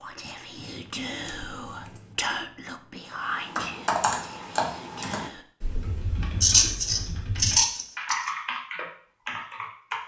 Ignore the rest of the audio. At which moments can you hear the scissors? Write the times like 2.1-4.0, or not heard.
0.6-2.1, 6.4-8.3.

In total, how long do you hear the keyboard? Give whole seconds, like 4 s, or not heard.
7 s.